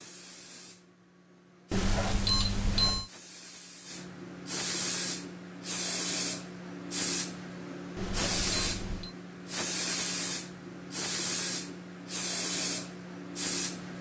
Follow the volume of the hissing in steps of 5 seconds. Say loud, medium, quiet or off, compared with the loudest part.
medium, loud, loud.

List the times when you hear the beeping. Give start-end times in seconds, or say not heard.
1.7-3.1, 8.0-9.2.